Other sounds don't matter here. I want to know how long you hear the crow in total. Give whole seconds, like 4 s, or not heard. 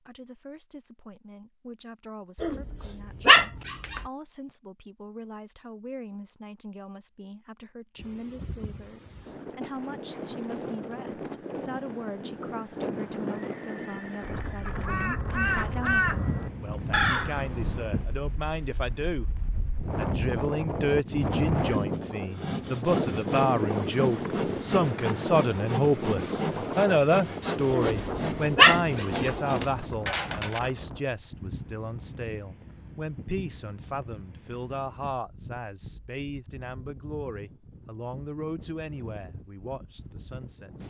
3 s.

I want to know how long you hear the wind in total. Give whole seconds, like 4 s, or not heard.
33 s.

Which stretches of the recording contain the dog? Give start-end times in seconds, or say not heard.
2.4-4.0, 27.7-29.4.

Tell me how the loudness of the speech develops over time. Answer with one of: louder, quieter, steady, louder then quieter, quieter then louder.
louder then quieter.